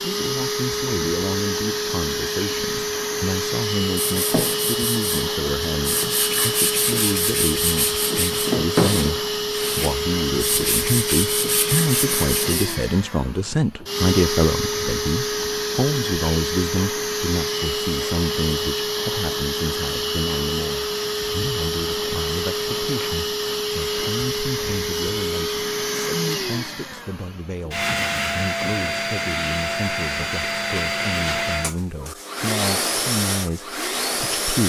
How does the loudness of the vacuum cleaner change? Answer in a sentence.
The volume of the vacuum cleaner stays about the same.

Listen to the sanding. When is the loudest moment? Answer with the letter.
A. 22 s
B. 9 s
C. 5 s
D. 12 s
B.